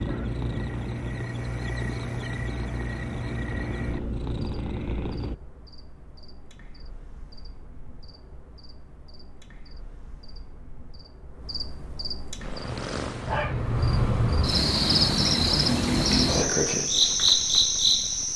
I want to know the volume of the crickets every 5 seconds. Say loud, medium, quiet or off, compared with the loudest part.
quiet, quiet, medium, loud.